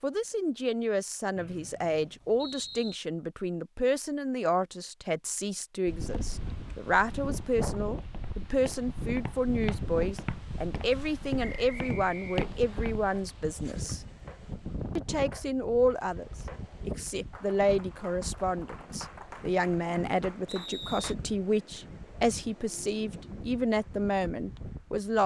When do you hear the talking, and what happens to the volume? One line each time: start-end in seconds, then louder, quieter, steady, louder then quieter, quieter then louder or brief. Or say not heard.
0.0-14.0 steady
14.9-25.2 steady.